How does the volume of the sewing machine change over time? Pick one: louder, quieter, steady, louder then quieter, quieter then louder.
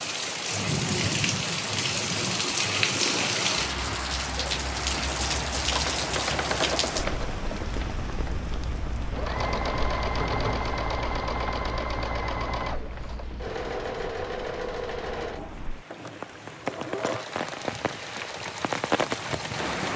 louder then quieter.